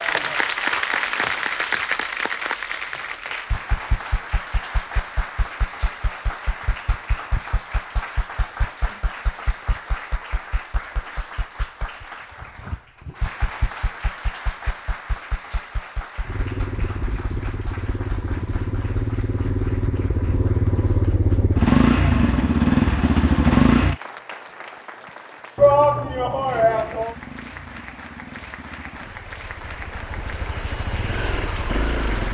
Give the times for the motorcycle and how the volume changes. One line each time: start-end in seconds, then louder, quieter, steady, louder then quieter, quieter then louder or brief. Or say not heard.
16.2-23.9 louder
26.1-32.3 louder.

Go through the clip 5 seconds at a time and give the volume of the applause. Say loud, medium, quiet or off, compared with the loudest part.
loud, medium, medium, quiet, quiet, quiet, medium.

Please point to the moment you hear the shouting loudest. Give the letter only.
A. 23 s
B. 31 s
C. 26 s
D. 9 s
C.